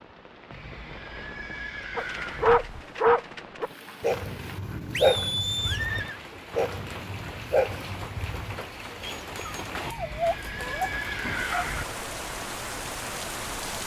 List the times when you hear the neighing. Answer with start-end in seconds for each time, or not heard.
0.5-2.5, 4.9-6.2, 9.8-11.8.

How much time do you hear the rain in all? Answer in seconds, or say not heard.
14 s.